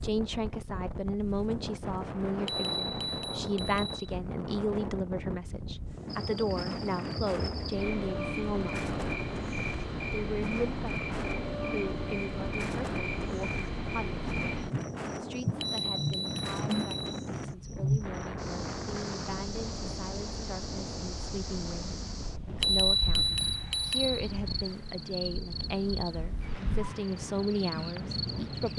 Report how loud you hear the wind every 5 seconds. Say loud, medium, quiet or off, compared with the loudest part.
loud, loud, loud, loud, medium, loud.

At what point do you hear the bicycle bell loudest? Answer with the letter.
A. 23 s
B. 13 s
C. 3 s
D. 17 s
A.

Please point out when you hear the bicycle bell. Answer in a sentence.
You can hear the bicycle bell from 2.5 to 4.0 s, from 15.6 to 17.1 s and from 22.6 to 24.1 s.